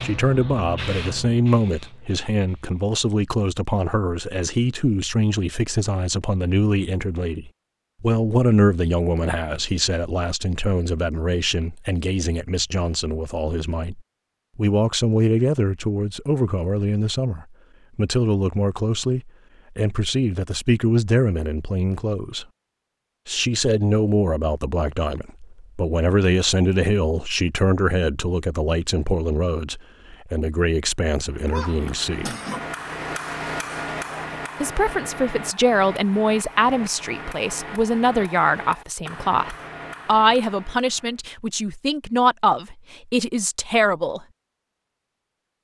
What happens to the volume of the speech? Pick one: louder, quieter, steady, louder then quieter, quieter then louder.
steady.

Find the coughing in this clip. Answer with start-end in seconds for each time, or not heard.
31.4-32.7.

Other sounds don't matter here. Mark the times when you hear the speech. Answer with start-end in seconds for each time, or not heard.
0.0-22.4, 23.2-32.3, 34.6-44.2.